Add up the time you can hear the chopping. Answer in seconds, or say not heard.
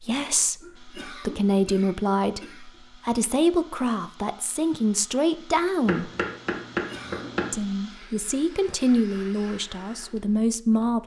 2 s.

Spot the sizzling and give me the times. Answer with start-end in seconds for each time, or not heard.
not heard.